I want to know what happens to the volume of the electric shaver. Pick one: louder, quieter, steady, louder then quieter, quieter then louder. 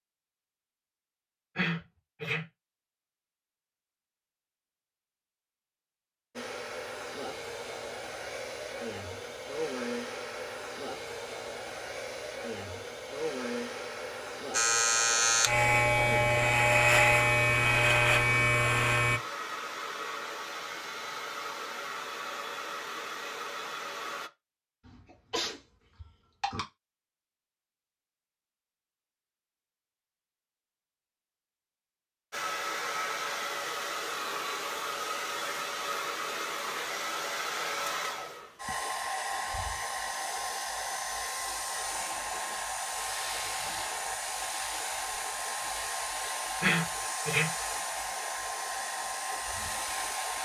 steady.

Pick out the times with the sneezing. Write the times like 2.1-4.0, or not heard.
1.6-2.5, 25.1-26.6, 46.6-47.5.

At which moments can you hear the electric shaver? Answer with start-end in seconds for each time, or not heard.
14.5-19.2.